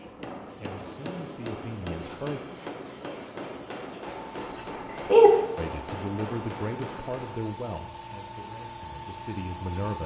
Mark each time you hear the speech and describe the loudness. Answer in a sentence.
You can hear the speech briefly from 0.0 to 2.4 s; and from 5.5 to 10.0 s, getting quieter then louder.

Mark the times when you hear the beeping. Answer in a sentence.
The beeping can be heard from 4.4 to 5.3 s.